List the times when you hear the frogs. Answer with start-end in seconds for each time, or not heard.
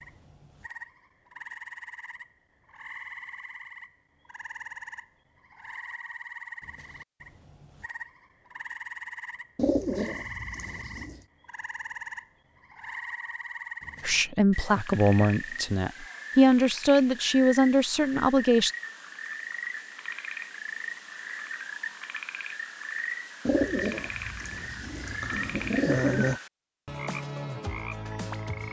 0.0-28.6.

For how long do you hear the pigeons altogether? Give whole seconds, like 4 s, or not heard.
5 s.